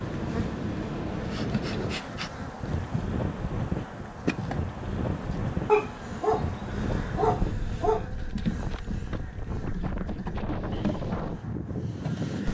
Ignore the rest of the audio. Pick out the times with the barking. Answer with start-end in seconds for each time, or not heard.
5.7-8.1.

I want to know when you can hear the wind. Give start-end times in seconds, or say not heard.
0.0-12.4.